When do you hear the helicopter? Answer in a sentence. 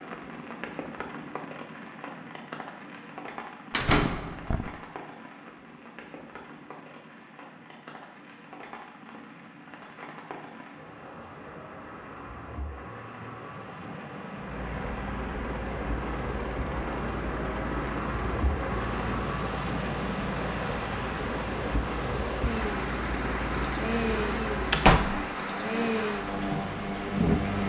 The helicopter can be heard from 14.3 to 27.6 s.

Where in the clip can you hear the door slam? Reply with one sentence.
You can hear the door slam from 3.7 to 4.7 s and from 24.7 to 25.2 s.